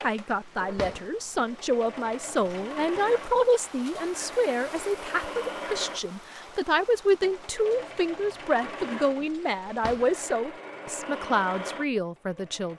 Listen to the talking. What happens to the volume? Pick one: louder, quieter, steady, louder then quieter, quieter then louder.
steady.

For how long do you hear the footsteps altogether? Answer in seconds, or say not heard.
not heard.